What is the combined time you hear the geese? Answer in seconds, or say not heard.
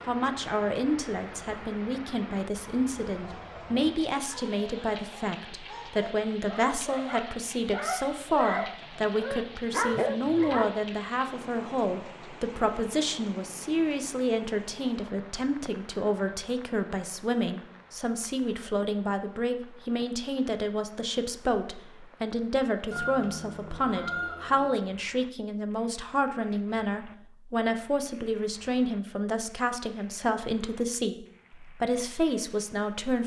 2 s.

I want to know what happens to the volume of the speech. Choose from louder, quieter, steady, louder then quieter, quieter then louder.
steady.